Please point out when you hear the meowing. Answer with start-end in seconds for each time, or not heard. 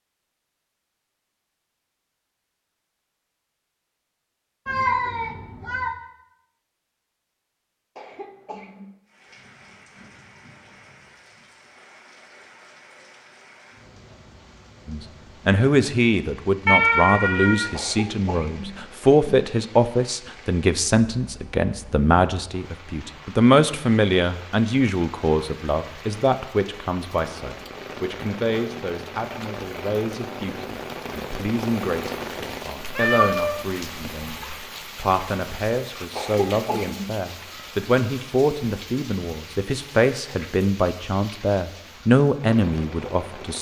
4.7-6.0, 16.6-17.7, 32.8-34.5.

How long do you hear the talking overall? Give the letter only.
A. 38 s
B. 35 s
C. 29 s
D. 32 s
C.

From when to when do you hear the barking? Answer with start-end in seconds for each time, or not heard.
not heard.